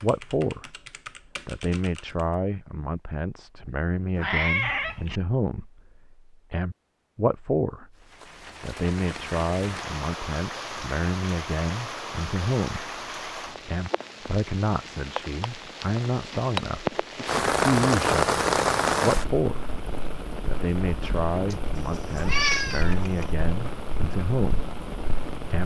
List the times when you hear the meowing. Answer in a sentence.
The meowing can be heard from 4.2 to 5.2 s and from 21.5 to 23.2 s.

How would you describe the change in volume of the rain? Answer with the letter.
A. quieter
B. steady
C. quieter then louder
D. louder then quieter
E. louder
D.